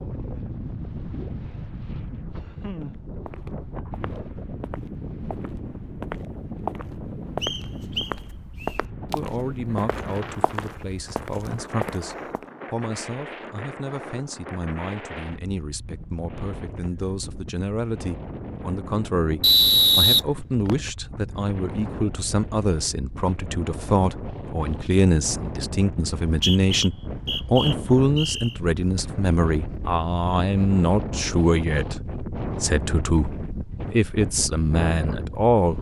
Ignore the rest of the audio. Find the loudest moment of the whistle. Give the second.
20 s.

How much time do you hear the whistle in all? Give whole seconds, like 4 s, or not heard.
5 s.